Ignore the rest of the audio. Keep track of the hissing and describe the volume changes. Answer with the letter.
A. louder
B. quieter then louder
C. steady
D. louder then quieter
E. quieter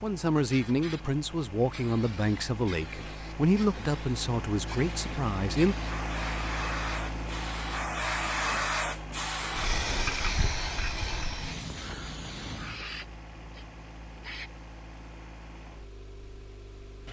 D.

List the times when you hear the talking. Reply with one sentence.
The talking can be heard from 0.0 to 5.8 s.